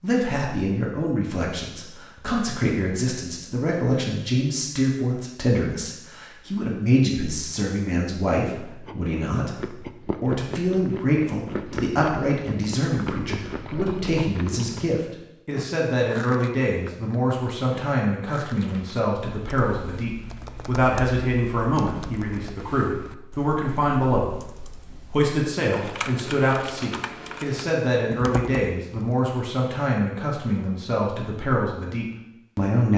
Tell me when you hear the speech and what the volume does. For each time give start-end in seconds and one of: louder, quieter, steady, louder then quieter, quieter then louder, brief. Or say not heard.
0.0-32.9 steady.